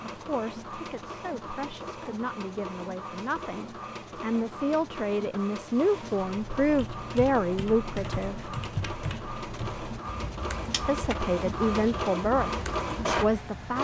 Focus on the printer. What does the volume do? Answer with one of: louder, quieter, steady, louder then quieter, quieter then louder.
louder.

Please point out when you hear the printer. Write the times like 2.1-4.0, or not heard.
0.0-13.7.